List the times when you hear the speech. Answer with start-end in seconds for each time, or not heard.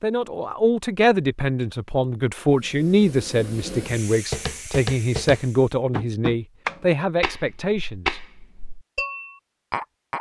0.0-8.2.